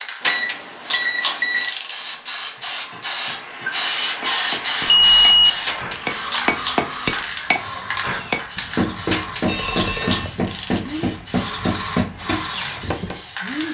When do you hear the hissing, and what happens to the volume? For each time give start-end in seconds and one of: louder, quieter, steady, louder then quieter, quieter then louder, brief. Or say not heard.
0.0-13.6 louder then quieter.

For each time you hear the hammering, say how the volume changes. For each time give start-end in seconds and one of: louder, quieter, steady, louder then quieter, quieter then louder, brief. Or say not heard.
2.5-13.2 louder.